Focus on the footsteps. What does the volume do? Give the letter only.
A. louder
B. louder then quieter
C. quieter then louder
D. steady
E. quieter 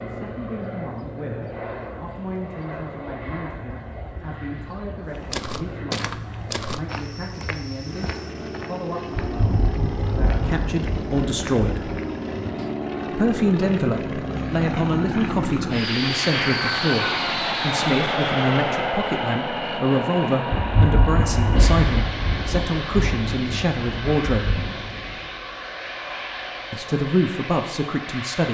E.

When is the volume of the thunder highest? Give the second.
21 s.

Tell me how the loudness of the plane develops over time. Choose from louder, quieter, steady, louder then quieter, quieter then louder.
louder then quieter.